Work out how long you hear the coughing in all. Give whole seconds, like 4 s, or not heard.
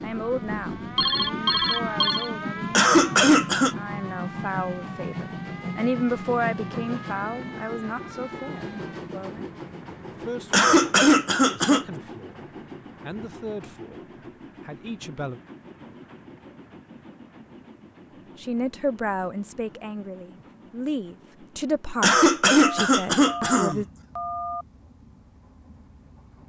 4 s.